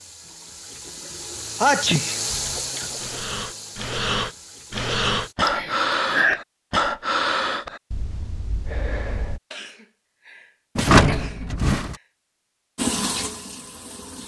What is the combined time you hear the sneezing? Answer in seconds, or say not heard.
4 s.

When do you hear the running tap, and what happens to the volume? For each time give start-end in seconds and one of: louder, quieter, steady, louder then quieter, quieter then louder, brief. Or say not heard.
0.0-5.3 louder then quieter
12.8-14.2 brief.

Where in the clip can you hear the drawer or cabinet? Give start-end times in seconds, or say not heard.
10.8-11.9.